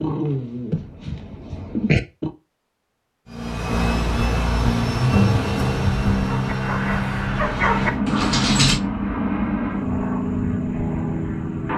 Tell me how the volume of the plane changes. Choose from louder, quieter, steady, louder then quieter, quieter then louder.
steady.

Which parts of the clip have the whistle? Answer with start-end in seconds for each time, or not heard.
not heard.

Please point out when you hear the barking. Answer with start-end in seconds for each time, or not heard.
0.0-2.3, 6.2-8.8.